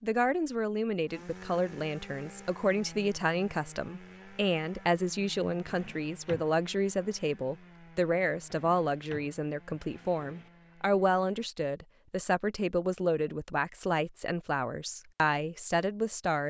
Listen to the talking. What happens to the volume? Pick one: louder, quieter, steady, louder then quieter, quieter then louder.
steady.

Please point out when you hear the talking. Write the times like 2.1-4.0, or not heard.
0.0-16.4.